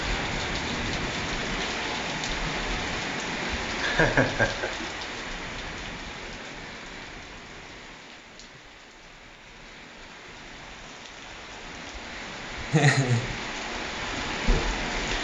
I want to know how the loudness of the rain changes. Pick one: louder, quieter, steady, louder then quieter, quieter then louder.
quieter then louder.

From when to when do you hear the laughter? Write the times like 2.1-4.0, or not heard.
3.8-4.7, 12.7-13.3.